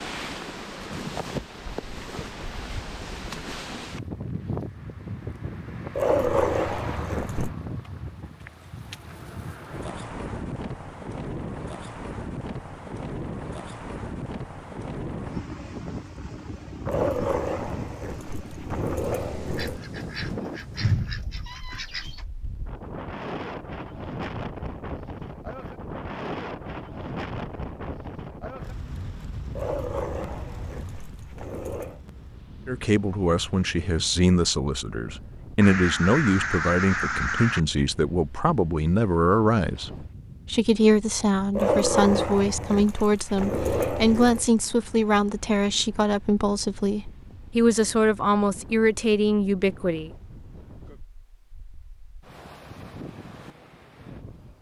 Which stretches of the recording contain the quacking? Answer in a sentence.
You can hear the quacking from 19.6 to 22.2 s and from 35.6 to 37.6 s.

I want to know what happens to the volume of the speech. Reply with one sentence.
The volume of the speech stays about the same.